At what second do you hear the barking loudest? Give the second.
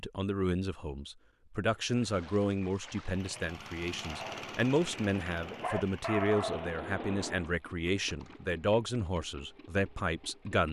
6 s.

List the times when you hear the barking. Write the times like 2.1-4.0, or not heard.
4.0-7.5.